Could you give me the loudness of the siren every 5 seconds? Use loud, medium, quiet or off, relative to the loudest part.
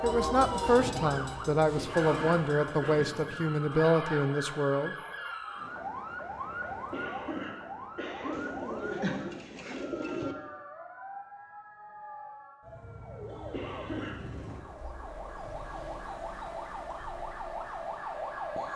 loud, loud, medium, loud.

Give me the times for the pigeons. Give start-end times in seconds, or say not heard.
8.3-10.3.